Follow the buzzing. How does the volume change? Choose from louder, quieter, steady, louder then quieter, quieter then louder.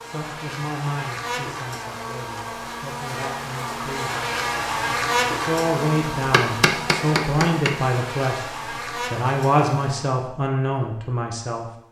louder then quieter.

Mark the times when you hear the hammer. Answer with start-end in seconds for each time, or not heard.
6.2-7.8.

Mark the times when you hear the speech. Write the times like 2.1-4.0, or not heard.
0.0-4.7, 5.3-8.5, 9.1-11.7.